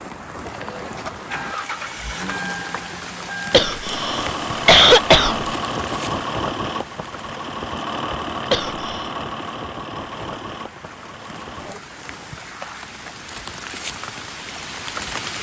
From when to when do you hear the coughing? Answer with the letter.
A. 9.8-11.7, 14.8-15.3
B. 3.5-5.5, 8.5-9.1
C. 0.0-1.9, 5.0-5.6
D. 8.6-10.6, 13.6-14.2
B.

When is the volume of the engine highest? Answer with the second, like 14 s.
6 s.